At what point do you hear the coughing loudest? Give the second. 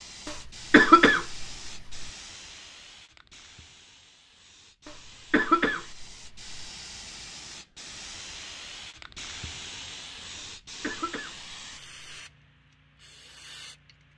1 s.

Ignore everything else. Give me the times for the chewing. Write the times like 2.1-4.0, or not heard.
not heard.